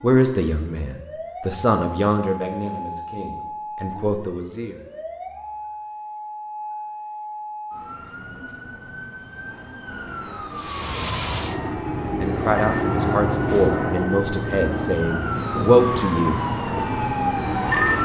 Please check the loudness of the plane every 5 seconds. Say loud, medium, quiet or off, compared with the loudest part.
off, off, loud, medium.